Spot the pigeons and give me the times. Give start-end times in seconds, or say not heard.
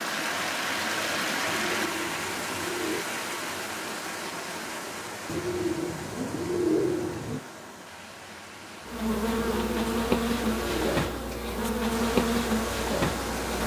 1.4-3.0, 5.2-7.4, 9.6-11.4.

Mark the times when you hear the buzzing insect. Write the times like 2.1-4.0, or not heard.
8.8-13.6.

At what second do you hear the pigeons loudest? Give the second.
7 s.